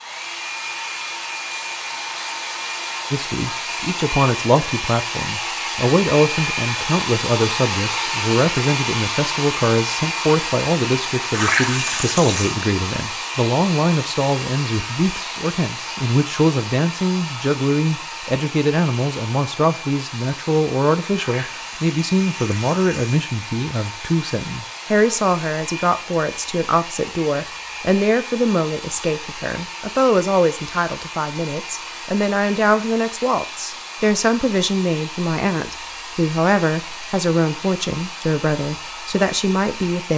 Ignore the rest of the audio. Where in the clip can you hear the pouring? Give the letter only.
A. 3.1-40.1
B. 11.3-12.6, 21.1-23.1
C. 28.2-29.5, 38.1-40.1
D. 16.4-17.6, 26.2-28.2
B.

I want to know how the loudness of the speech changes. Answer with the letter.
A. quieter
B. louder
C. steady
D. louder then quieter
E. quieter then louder
C.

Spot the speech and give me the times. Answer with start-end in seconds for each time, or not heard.
3.1-40.1.